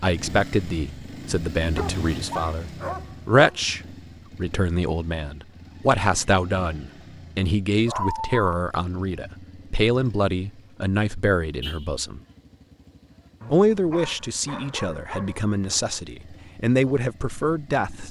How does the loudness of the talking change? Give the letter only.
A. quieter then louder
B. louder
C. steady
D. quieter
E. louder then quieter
C.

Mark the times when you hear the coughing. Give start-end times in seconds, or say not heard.
not heard.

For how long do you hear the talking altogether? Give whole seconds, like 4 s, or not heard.
17 s.